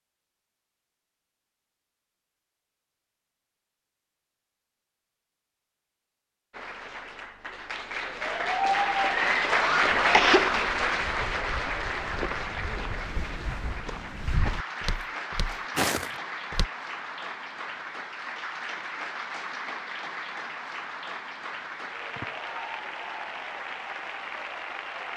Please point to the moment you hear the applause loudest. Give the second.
10 s.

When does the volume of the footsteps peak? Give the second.
16 s.